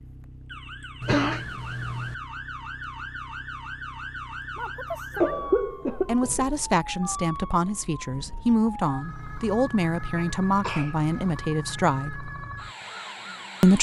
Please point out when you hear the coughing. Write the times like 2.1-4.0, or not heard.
1.0-2.1, 5.2-6.6, 10.2-11.2.